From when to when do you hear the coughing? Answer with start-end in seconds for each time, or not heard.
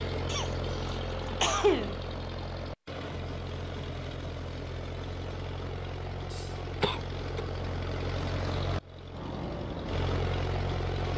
0.2-1.9, 6.3-7.5.